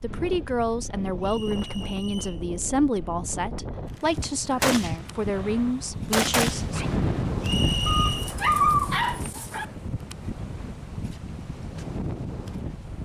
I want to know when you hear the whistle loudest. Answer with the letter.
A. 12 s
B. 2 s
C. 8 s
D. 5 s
C.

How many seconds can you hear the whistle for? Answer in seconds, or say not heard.
2 s.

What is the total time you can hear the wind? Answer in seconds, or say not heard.
13 s.